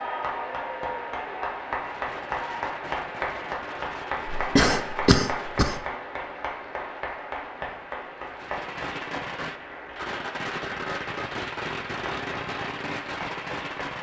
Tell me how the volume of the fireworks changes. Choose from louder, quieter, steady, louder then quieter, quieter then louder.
louder.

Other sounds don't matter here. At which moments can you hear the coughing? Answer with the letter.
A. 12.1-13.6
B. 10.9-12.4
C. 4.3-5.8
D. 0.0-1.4
C.